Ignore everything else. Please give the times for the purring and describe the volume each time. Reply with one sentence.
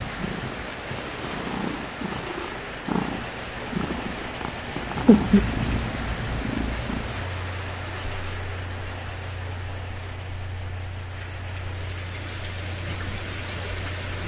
You can hear the purring from 0.0 to 14.2 s, getting louder then quieter.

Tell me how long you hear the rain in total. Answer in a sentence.
The rain can be heard for 14 seconds in total.